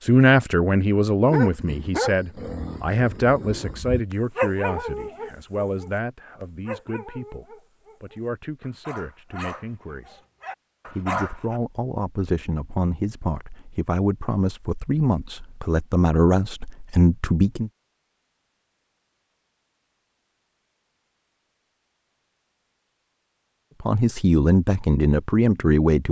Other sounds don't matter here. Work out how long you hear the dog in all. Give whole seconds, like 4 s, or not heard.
10 s.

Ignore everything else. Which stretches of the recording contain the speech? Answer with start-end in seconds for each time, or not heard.
0.0-10.2, 10.8-17.7, 23.8-26.0.